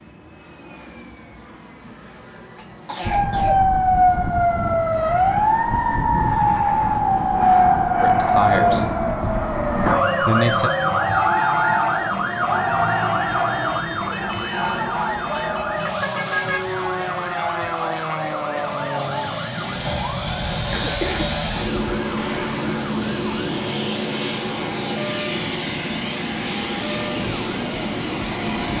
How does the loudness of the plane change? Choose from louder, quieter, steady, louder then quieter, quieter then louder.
louder.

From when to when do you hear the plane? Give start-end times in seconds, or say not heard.
0.0-28.7.